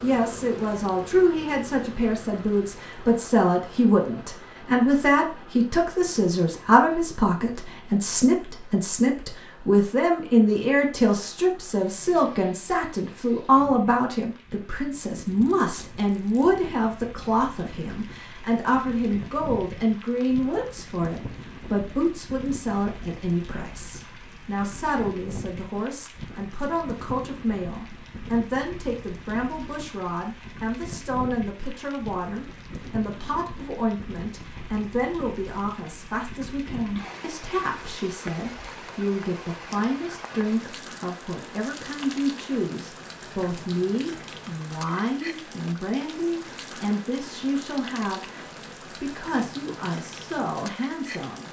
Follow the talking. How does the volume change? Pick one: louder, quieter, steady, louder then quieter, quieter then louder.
quieter.